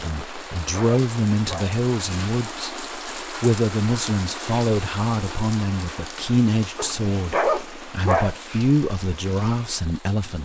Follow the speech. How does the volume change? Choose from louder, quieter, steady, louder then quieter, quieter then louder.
steady.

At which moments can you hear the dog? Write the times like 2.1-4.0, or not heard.
0.2-1.8, 6.8-8.3.